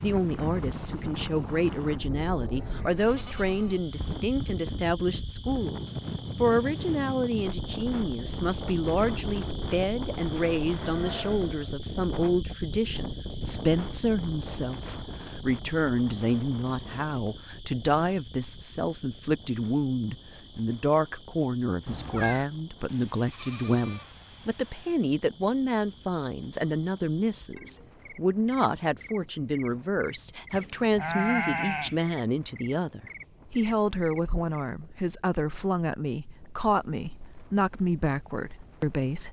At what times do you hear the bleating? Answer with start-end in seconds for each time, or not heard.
2.9-3.9, 10.7-11.8, 22.9-24.9, 30.5-32.0.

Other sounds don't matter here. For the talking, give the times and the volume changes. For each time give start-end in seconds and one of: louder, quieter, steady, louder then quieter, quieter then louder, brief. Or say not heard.
0.0-39.2 steady.